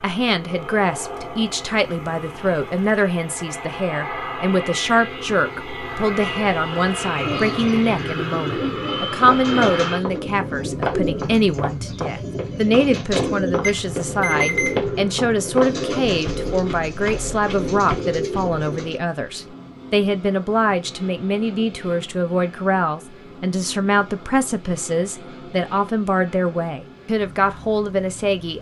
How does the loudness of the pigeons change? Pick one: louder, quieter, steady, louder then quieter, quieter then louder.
steady.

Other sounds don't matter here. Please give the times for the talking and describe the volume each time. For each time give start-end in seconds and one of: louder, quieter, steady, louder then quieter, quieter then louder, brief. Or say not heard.
0.0-28.5 steady.